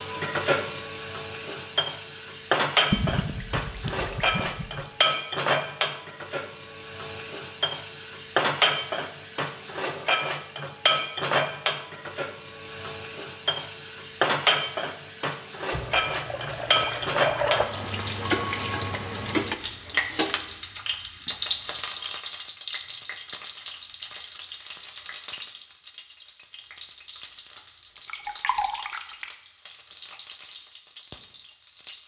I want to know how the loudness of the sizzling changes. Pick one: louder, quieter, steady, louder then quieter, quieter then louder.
quieter.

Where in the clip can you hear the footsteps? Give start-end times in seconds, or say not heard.
not heard.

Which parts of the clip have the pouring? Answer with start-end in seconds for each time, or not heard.
2.9-4.8, 15.7-17.6, 27.9-29.3.